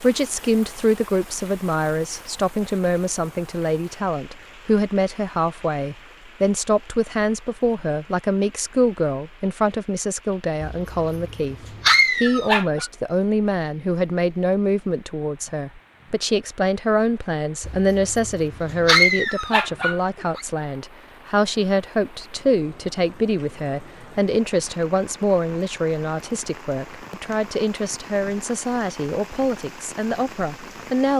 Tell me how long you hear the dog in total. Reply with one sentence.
You can hear the dog for 5 seconds altogether.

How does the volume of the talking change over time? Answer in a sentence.
The loudness of the talking stays about the same.